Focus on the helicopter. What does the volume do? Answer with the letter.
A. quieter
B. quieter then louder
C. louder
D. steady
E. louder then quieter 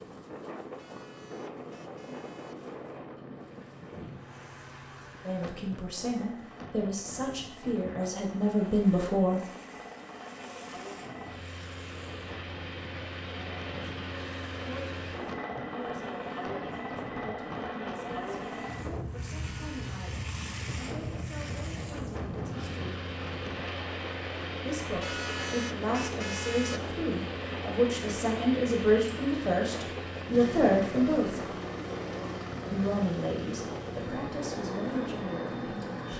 C.